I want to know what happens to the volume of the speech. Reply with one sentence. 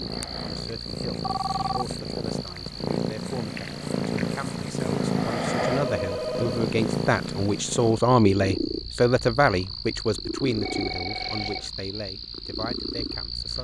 The volume of the speech goes up, then down.